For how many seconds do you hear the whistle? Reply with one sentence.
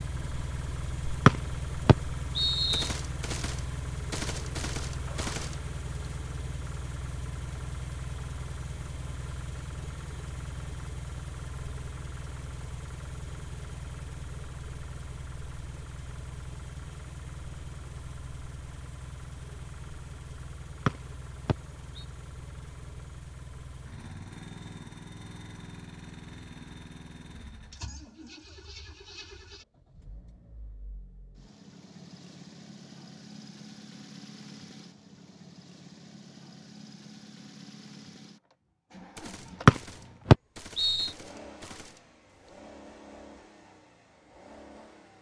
You can hear the whistle for 4 seconds altogether.